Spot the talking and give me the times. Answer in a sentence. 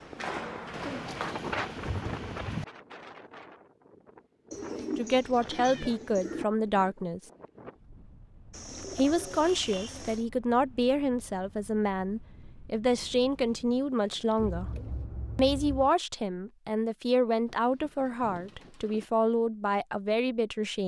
You can hear the talking from 5.0 to 7.2 s, from 8.9 to 14.7 s and from 15.3 to 20.8 s.